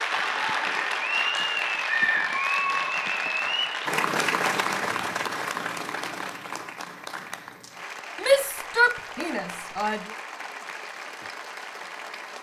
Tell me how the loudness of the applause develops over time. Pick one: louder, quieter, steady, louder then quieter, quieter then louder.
quieter.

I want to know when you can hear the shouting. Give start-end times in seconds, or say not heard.
8.2-10.1.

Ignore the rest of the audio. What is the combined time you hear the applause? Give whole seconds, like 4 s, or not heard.
12 s.